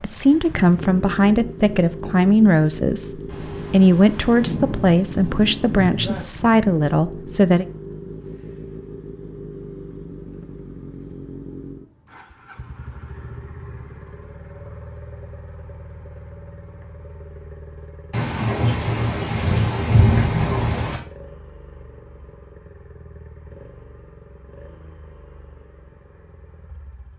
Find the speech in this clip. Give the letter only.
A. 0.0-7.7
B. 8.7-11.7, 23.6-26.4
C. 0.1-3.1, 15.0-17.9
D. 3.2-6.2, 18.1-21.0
A.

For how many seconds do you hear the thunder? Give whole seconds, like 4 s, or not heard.
6 s.